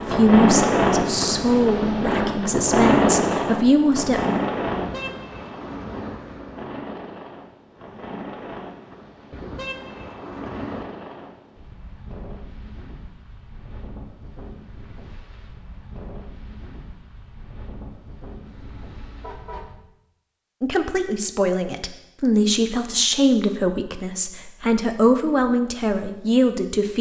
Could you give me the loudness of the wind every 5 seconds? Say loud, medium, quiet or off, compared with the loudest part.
loud, quiet, quiet, quiet, off, off.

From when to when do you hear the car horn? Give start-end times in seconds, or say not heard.
4.7-6.7, 9.3-10.9, 18.4-19.6.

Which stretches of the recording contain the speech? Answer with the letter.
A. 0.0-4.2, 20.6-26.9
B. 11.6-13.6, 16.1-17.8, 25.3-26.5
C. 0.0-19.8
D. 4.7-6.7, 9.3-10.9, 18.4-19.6
A.